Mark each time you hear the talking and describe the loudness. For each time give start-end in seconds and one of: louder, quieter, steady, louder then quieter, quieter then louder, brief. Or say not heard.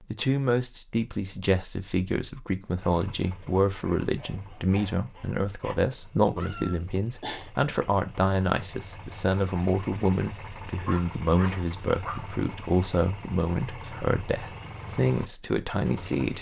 0.0-16.3 steady.